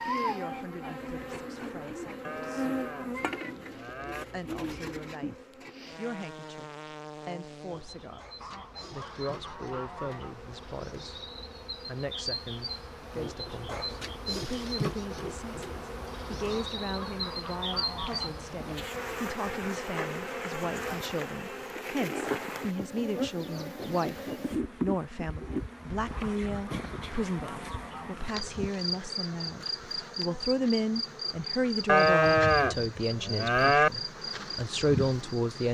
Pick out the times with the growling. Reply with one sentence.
You can't hear the growling here.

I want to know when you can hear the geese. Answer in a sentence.
You can hear the geese from 8.4 to 10.3 s, from 16.4 to 18.3 s and from 26.1 to 28.3 s.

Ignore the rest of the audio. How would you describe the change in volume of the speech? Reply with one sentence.
The volume of the speech goes up.